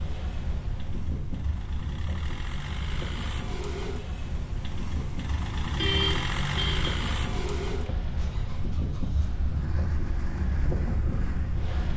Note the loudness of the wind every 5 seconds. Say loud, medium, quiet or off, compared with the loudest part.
medium, loud, loud.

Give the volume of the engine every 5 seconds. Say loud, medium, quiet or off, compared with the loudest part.
medium, loud, medium.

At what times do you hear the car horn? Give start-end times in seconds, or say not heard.
5.8-7.0.